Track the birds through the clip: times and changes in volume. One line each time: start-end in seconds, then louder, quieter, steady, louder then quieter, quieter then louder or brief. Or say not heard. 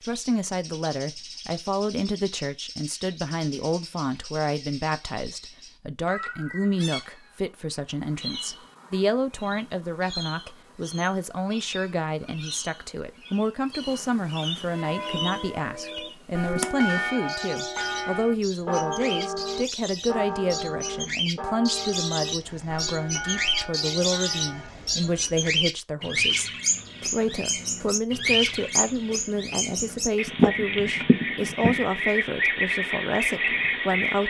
0.0-34.2 louder.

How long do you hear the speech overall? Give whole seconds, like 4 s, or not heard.
34 s.